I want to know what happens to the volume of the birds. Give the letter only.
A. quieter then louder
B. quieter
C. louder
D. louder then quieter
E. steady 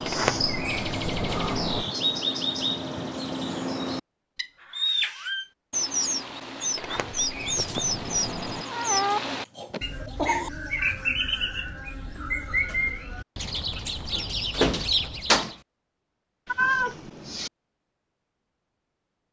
E.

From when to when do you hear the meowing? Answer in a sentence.
You can hear the meowing from 0.8 to 1.8 s, from 8.7 to 10.5 s and from 16.4 to 17.5 s.